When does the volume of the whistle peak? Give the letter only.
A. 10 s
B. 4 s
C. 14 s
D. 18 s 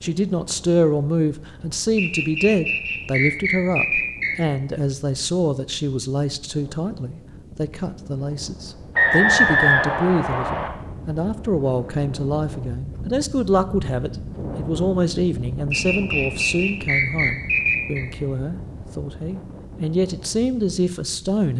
A.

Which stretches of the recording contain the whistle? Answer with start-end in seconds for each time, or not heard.
1.9-4.4, 8.9-10.7, 15.7-18.1.